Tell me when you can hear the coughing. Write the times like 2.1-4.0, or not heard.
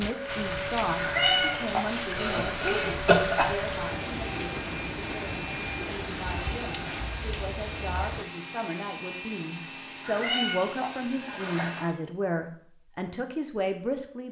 2.1-3.5.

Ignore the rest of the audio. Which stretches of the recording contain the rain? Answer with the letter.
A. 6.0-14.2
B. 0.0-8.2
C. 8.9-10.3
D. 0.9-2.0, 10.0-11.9
B.